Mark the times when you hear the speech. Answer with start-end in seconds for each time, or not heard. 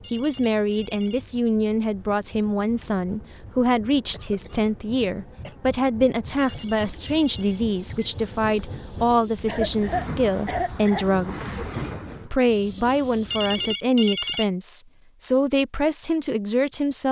0.1-11.7, 12.2-17.0.